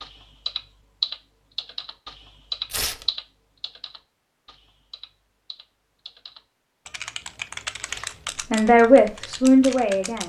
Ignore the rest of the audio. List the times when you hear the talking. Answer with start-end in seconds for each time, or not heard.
8.5-10.2.